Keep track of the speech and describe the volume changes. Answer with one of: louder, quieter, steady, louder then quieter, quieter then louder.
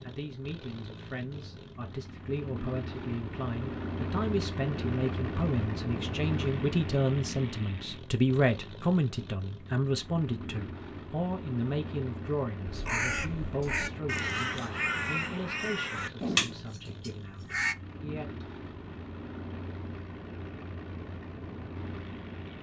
louder then quieter.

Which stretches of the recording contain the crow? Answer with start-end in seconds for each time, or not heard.
12.7-17.8.